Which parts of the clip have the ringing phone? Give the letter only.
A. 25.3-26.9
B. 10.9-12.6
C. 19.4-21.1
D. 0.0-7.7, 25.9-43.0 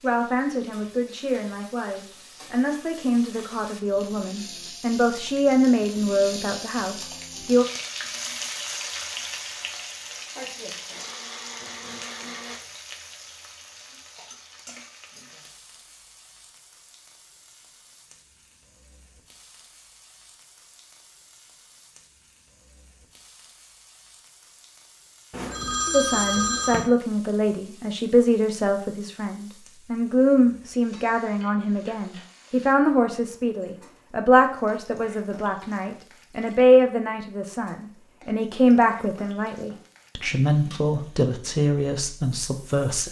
A.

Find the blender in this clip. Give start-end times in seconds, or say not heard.
10.9-12.6.